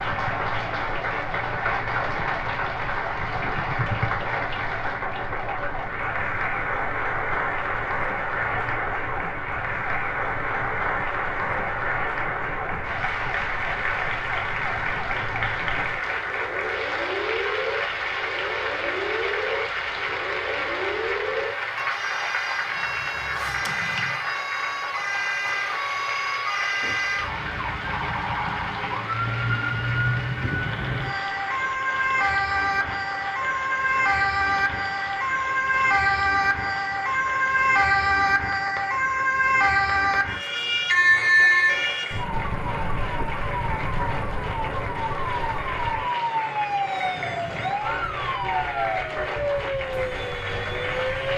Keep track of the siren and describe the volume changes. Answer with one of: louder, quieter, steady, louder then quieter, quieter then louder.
louder.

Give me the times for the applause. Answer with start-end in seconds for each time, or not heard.
0.0-51.3.